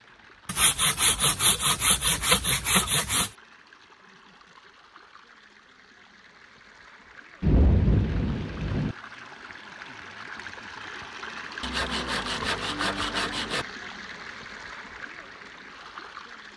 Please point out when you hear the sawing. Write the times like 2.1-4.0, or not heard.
0.5-3.3, 11.6-13.7.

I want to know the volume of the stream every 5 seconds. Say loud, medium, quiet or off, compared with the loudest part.
quiet, medium, loud, medium.